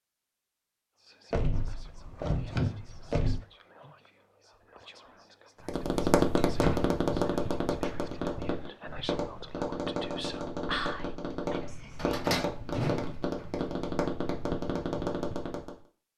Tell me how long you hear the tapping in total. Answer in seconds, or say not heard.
10 s.